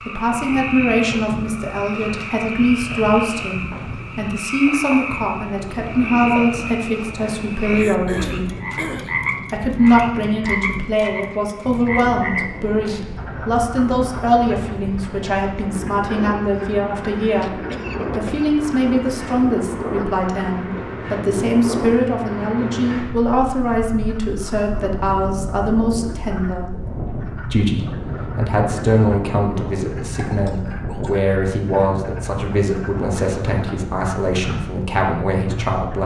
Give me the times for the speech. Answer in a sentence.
The speech can be heard from 0.1 to 8.6 s, from 9.5 to 26.8 s and from 27.4 to 36.0 s.